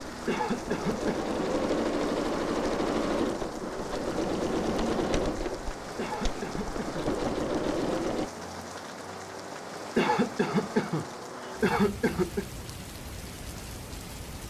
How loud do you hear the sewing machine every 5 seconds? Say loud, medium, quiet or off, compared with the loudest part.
loud, loud, off.